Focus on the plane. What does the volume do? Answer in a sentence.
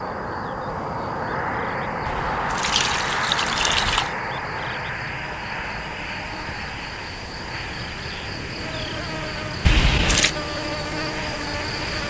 The loudness of the plane goes down.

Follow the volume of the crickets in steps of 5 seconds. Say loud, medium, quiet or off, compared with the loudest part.
quiet, medium, loud.